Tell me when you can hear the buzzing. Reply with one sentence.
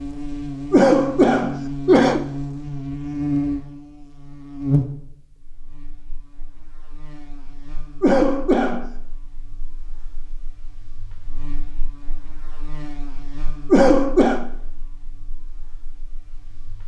The buzzing can be heard from 0.0 to 16.8 s.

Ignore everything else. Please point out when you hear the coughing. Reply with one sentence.
You can hear the coughing from 0.7 to 2.2 s, from 8.0 to 8.9 s and from 13.7 to 14.4 s.